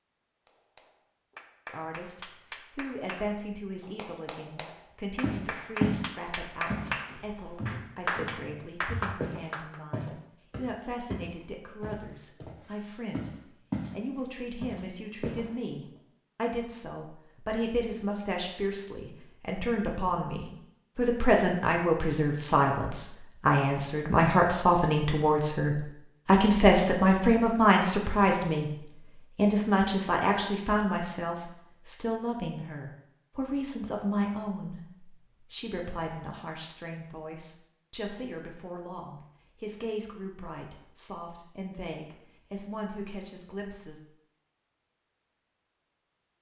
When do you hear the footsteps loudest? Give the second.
6 s.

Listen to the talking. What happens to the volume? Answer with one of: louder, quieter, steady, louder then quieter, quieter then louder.
louder then quieter.